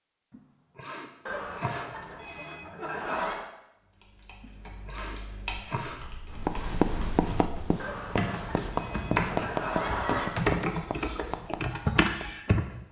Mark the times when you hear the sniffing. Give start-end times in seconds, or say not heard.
0.3-2.6, 4.4-6.0, 8.8-9.5.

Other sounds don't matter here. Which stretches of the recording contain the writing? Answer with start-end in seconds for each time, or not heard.
6.3-12.3.